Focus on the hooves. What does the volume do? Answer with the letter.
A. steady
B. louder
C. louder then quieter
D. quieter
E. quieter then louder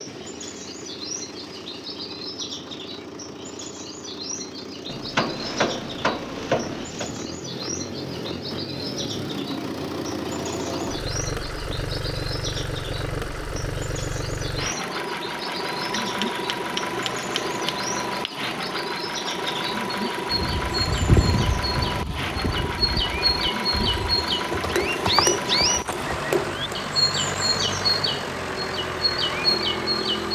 E.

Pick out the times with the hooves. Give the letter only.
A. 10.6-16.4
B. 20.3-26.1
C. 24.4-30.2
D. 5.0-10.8
B.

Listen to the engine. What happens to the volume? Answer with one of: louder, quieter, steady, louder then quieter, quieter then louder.
louder.